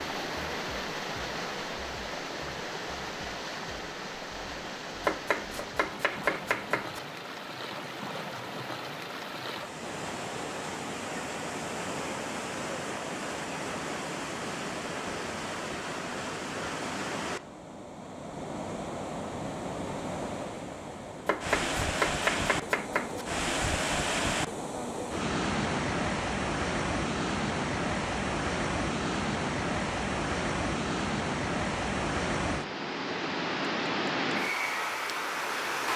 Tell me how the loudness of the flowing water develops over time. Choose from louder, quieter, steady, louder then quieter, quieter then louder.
louder.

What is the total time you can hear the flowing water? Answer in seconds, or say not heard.
36 s.